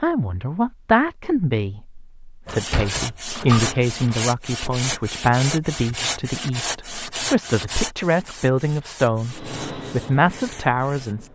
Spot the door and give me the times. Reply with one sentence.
You can hear the door from 2.5 to 4.2 s.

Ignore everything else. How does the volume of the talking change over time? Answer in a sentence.
The loudness of the talking stays about the same.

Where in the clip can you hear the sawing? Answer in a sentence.
You can hear the sawing from 2.5 to 11.2 s.